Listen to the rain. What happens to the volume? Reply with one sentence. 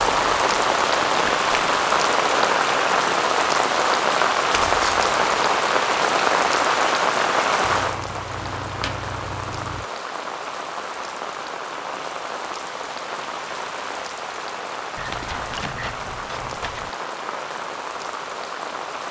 The volume of the rain goes down.